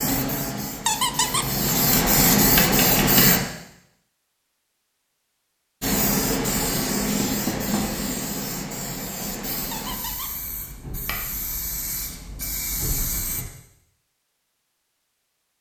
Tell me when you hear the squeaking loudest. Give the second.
1 s.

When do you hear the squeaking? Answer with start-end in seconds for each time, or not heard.
0.8-1.5, 9.7-10.3.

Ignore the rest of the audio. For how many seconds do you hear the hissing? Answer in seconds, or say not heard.
11 s.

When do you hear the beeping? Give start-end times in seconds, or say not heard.
not heard.